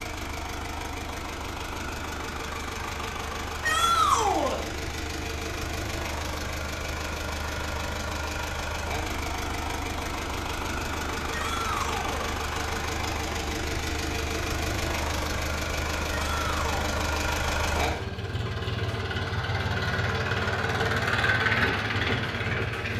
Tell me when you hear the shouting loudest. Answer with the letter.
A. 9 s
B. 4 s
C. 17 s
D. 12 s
B.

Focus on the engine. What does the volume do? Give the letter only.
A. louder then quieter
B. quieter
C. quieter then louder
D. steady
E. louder
E.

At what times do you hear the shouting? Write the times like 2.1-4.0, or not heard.
3.6-4.6, 11.3-12.3, 16.1-16.8.